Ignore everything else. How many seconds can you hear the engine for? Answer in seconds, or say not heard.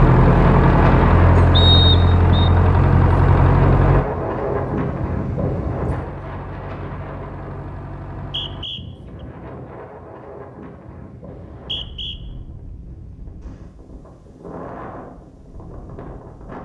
9 s.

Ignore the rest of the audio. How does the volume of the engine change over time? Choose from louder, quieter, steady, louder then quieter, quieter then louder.
quieter.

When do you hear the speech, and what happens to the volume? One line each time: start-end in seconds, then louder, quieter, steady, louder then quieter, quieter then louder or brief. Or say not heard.
not heard.